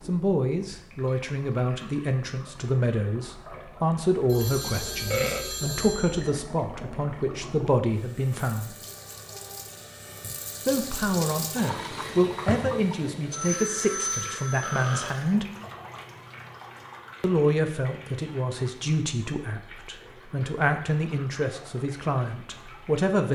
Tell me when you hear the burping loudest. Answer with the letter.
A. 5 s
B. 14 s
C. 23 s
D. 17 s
A.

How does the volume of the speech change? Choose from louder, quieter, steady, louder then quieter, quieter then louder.
steady.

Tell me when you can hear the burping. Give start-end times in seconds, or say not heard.
4.7-5.5, 14.6-15.2.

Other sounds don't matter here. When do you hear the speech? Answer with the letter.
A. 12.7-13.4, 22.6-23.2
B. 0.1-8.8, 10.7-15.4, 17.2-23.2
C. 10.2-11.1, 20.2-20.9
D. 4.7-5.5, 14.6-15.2
B.